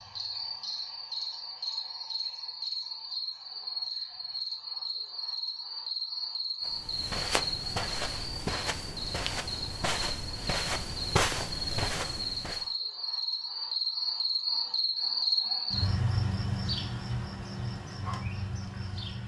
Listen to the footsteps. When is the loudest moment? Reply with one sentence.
The loudest moment of the footsteps is at 11 seconds.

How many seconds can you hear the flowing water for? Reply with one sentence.
The flowing water can't be heard in this clip.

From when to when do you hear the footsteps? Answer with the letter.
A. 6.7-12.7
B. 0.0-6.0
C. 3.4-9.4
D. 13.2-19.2
A.